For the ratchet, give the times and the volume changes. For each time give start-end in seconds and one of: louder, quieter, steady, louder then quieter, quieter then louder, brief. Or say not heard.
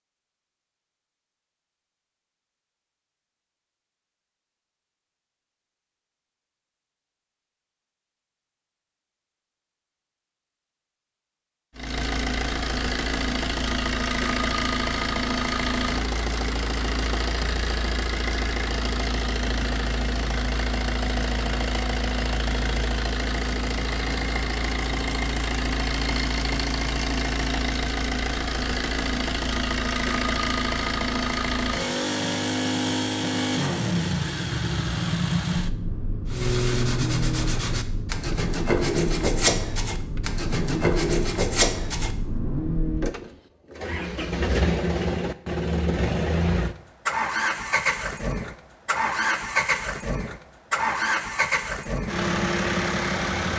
not heard.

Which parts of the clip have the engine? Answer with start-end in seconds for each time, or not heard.
11.8-53.5.